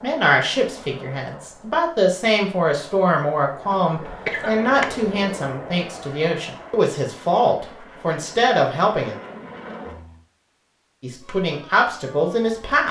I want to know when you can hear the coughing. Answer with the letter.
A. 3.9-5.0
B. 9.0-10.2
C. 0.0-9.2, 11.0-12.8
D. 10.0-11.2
A.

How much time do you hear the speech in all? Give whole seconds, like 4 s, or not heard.
11 s.